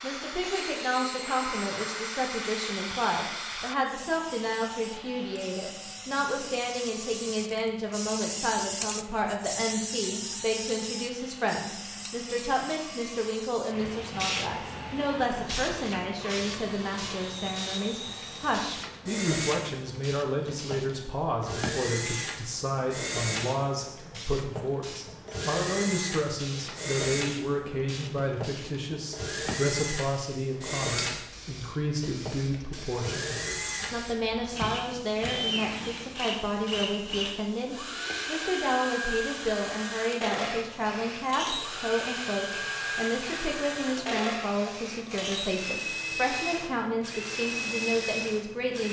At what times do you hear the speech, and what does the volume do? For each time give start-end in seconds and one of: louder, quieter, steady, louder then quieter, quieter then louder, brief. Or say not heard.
0.0-48.8 steady.